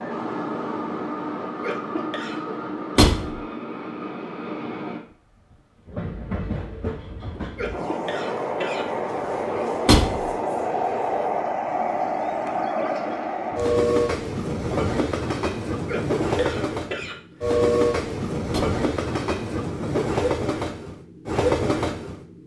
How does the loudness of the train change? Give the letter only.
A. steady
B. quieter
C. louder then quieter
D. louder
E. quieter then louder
D.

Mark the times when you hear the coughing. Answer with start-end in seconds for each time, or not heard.
1.6-2.5, 7.5-8.8, 15.8-17.1.